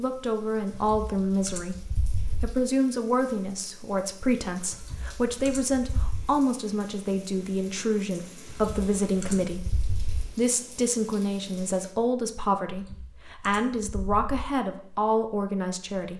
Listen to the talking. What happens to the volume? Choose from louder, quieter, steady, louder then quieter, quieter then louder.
steady.